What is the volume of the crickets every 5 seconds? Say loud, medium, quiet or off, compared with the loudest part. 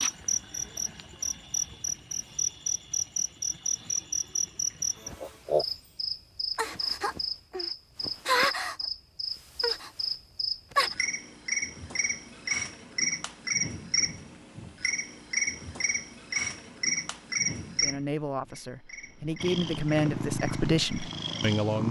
loud, loud, loud, loud, off.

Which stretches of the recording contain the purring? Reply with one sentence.
You can hear the purring from 19.4 to 21.8 s.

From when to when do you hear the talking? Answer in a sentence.
The talking can be heard from 17.8 to 21.8 s.